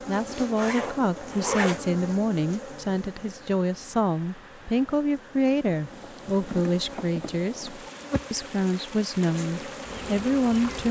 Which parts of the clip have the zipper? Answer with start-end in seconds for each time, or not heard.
0.1-1.9.